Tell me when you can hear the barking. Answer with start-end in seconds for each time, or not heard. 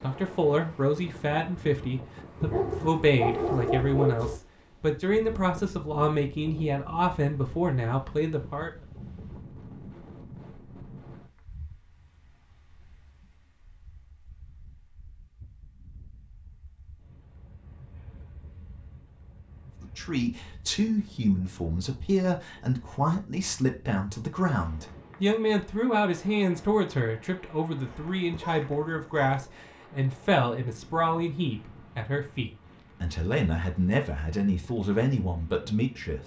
2.4-4.3, 27.9-29.5.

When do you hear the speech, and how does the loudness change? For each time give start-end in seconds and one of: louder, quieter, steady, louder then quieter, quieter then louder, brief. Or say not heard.
0.0-8.7 steady
19.8-36.2 steady.